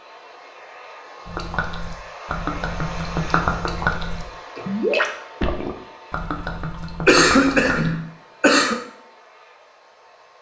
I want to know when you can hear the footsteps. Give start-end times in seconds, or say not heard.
not heard.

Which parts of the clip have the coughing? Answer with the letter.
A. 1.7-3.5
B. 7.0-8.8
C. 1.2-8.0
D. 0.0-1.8
B.